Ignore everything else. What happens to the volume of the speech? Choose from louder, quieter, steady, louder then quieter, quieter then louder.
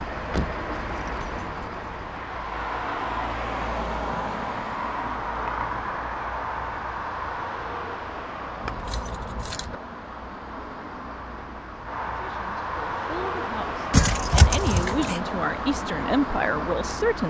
louder.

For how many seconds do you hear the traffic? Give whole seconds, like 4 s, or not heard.
17 s.